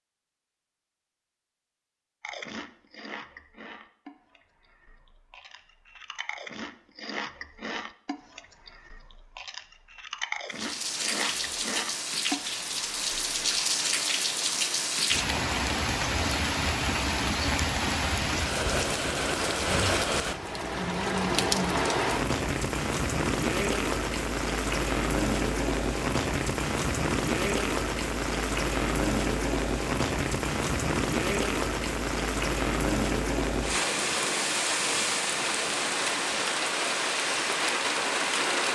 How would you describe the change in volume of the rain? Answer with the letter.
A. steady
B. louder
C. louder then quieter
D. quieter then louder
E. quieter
A.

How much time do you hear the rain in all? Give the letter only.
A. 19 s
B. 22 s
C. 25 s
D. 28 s
D.